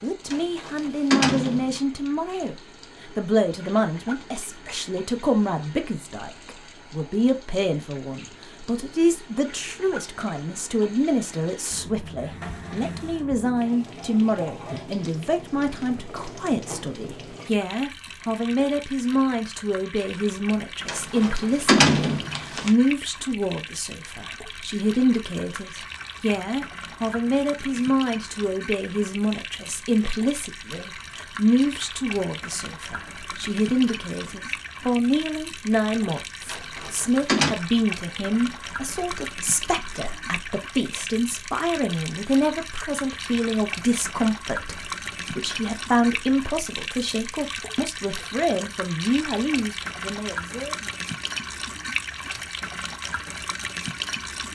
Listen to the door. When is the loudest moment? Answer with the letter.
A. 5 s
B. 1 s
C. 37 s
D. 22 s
D.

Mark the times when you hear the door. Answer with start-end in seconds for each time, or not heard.
0.3-1.8, 20.9-22.7, 36.5-37.5.